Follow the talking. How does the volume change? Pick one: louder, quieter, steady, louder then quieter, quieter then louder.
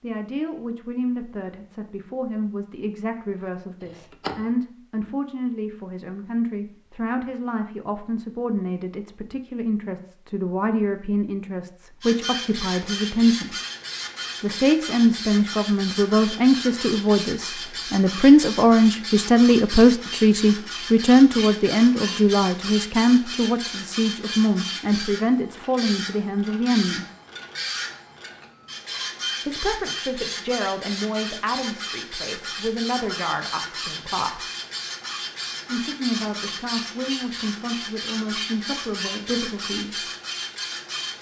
louder then quieter.